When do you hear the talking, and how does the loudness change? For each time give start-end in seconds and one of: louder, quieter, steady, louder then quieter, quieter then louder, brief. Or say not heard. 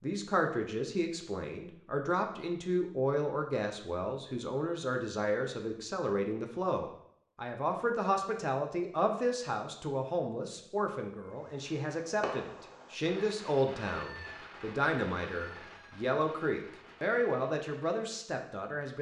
0.0-18.9 steady.